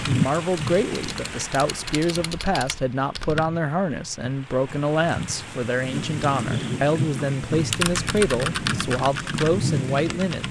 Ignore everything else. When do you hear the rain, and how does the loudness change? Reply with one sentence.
The rain can be heard from 0.0 to 10.4 s, getting quieter then louder.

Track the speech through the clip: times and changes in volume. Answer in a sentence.
The speech can be heard from 0.1 to 10.4 s, at a steady volume.